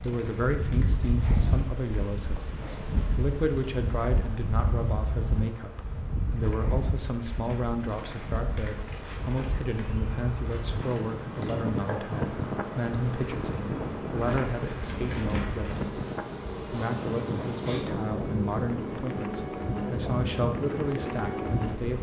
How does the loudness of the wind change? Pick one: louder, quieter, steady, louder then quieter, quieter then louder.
steady.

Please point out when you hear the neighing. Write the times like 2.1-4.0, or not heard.
not heard.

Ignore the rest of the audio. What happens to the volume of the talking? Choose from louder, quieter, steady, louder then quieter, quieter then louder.
steady.